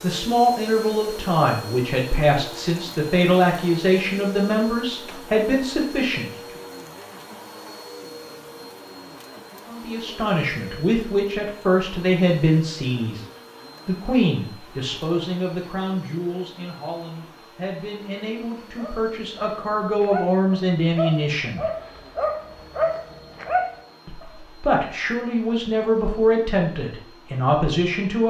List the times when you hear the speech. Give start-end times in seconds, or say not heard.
0.0-6.3, 9.7-13.2, 13.8-21.6, 24.1-28.2.